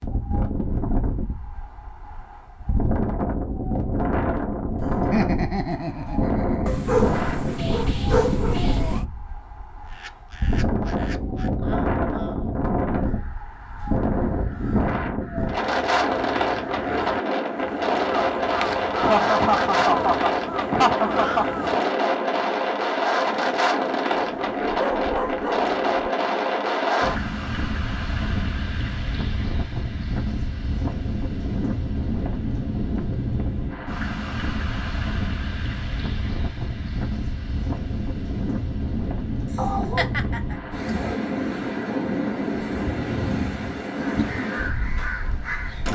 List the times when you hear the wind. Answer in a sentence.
The wind can be heard from 0.0 to 45.9 s.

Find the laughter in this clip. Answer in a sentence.
You can hear the laughter from 4.8 to 6.8 s, from 19.0 to 21.4 s and from 40.0 to 40.5 s.